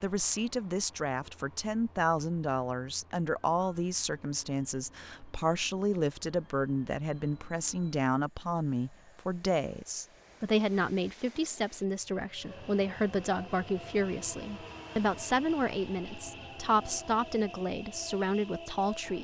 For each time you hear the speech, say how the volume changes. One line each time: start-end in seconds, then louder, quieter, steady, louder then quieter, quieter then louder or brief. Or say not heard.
0.0-19.1 steady.